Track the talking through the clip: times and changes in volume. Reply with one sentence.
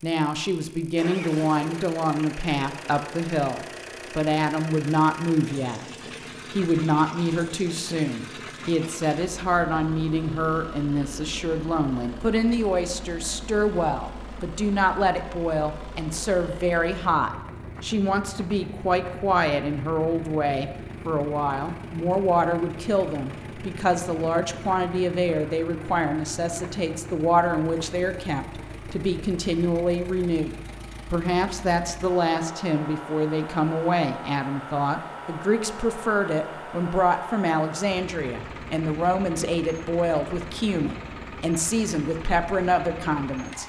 You can hear the talking from 0.0 to 5.8 s, at a steady volume; and from 6.5 to 43.6 s, at a steady volume.